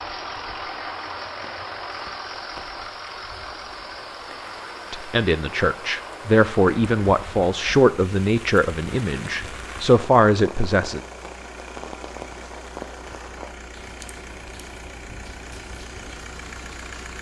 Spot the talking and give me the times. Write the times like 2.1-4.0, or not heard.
4.9-11.0.